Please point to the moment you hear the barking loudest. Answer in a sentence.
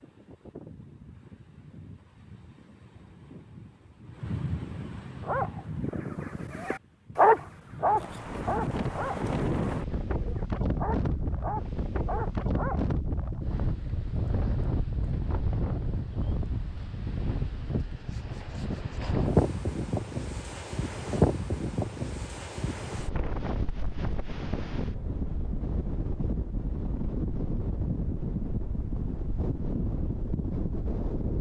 The volume of the barking peaks at 7 seconds.